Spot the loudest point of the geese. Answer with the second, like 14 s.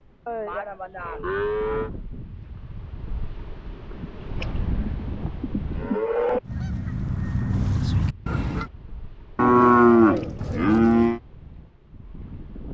8 s.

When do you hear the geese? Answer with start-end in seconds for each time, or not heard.
6.4-8.7.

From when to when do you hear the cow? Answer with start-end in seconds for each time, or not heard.
0.2-1.9, 4.4-6.4, 9.3-11.2.